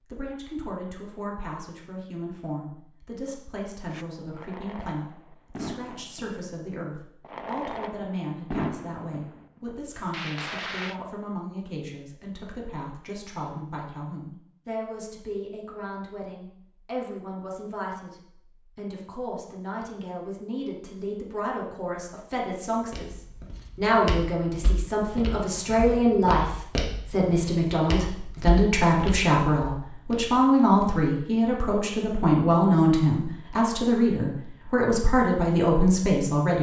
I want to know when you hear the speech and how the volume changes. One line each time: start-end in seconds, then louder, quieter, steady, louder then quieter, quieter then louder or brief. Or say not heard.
0.1-36.5 louder.